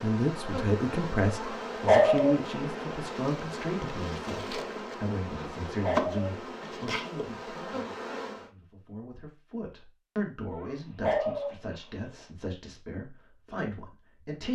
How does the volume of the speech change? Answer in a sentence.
The loudness of the speech goes down.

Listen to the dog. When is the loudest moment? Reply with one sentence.
The loudest moment of the dog is at 2 seconds.